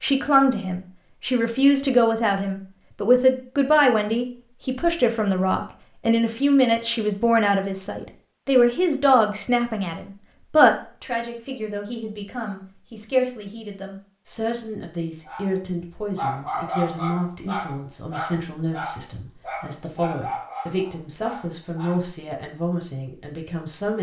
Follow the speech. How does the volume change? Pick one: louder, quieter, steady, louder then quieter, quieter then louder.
quieter.